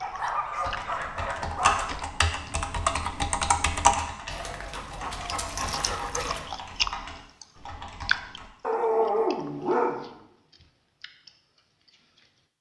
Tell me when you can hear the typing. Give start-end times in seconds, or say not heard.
0.6-8.4.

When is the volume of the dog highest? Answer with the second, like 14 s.
9 s.